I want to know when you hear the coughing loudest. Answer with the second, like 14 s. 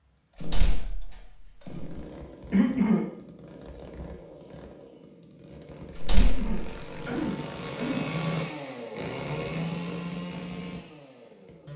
3 s.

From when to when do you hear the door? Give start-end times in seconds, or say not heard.
0.3-1.9, 6.0-6.5.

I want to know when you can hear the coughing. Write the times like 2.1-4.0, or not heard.
2.5-3.0, 6.1-8.2.